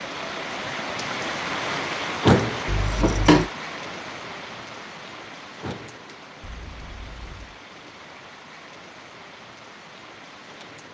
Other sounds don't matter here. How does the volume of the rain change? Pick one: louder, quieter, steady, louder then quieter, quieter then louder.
quieter.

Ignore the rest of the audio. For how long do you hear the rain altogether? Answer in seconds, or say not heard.
11 s.